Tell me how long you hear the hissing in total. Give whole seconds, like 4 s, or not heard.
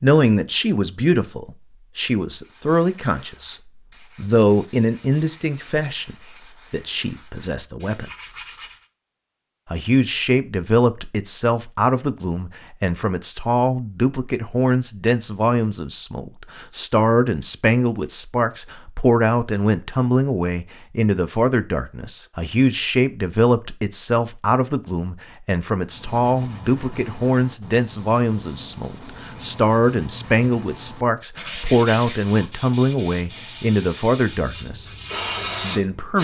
4 s.